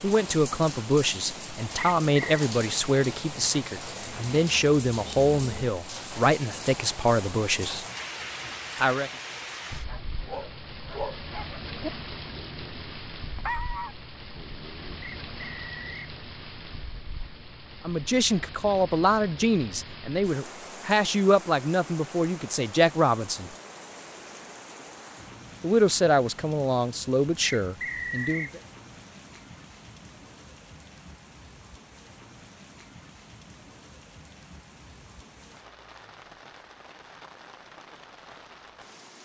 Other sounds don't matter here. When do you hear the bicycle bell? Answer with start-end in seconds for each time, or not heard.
not heard.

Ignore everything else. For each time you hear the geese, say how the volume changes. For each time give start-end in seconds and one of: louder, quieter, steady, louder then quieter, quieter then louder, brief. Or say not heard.
not heard.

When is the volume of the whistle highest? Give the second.
28 s.